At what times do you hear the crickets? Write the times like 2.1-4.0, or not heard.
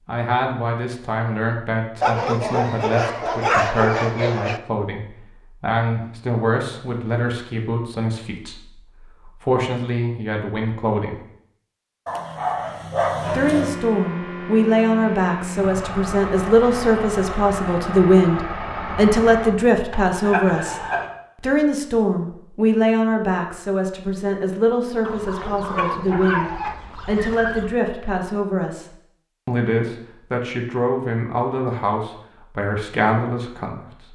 not heard.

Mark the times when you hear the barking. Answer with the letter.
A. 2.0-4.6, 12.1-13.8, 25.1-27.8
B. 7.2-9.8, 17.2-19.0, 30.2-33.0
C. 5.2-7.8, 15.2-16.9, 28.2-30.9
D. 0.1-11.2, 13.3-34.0
A.